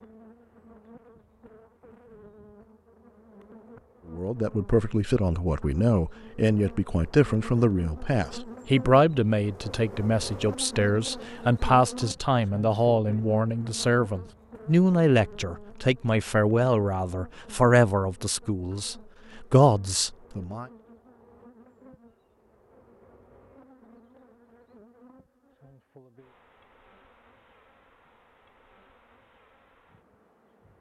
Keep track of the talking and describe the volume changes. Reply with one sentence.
The volume of the talking stays about the same.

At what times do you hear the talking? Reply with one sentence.
The talking can be heard from 4.1 to 20.6 s.